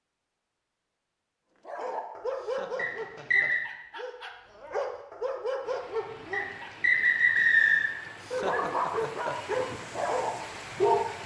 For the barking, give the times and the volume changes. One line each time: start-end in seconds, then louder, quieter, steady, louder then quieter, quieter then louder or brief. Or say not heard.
1.6-6.7 quieter then louder
8.3-11.1 brief.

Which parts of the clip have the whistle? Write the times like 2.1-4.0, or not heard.
2.8-3.6, 6.3-7.9.